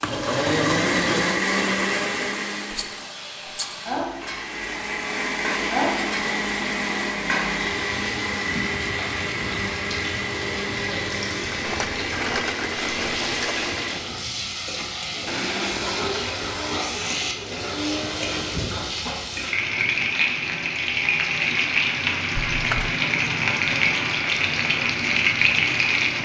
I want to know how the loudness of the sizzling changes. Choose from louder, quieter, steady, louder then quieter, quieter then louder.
louder.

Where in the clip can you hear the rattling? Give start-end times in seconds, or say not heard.
2.7-3.9, 11.6-13.8, 22.4-22.9.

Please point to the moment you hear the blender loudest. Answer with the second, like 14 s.
1 s.